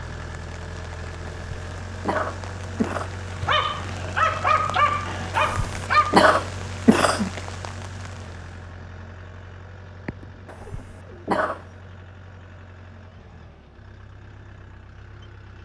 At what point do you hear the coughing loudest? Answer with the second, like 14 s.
6 s.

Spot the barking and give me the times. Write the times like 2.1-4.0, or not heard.
3.4-6.2, 10.1-11.2.